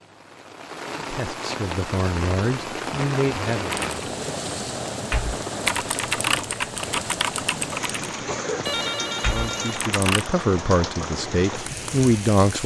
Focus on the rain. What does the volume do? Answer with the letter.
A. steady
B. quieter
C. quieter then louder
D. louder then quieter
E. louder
A.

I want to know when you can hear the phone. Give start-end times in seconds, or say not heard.
8.7-9.8.